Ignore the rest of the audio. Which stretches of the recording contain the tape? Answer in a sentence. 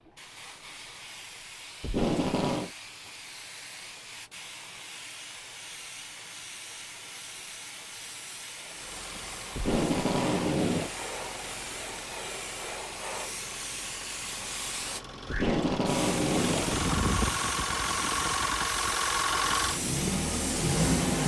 You can hear the tape from 1.8 to 2.7 s, from 9.6 to 10.9 s and from 15.2 to 16.9 s.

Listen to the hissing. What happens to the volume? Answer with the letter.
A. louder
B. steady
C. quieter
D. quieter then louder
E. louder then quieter
A.